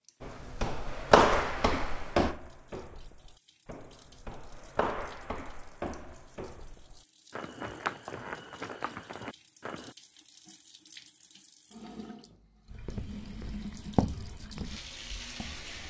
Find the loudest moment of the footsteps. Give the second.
1 s.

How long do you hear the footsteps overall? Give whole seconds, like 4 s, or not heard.
13 s.